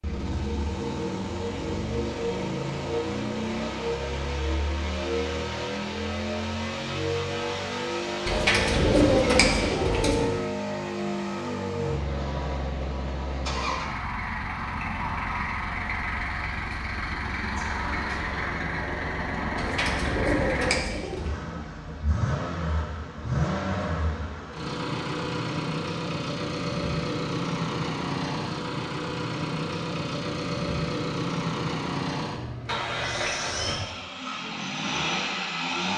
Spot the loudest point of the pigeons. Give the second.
9 s.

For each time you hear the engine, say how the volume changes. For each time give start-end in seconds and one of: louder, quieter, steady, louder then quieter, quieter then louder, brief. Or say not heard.
0.0-35.9 steady.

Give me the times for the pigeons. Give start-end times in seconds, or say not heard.
8.2-10.2, 19.6-21.3.